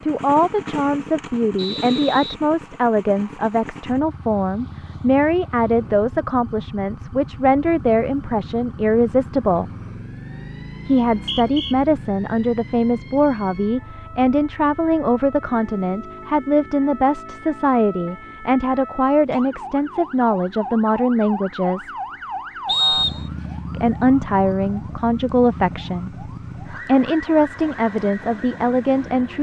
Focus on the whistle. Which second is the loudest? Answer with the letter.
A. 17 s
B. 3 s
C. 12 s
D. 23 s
D.